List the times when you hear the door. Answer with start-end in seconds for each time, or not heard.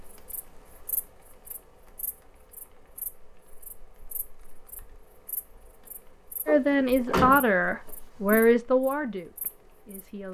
6.5-8.4.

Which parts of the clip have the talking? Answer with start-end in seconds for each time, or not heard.
6.5-10.2.